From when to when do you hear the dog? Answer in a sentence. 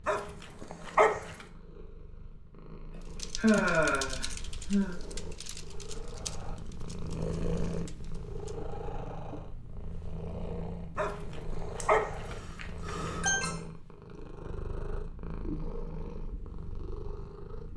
The dog can be heard from 0.1 to 1.4 s and from 10.9 to 13.2 s.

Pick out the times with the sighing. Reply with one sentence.
You can hear the sighing from 3.0 to 5.0 s and from 11.8 to 13.6 s.